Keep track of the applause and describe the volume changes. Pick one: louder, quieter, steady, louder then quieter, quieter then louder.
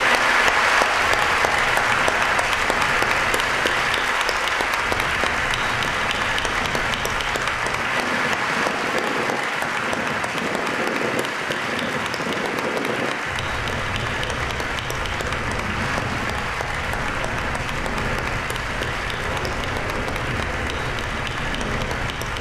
quieter.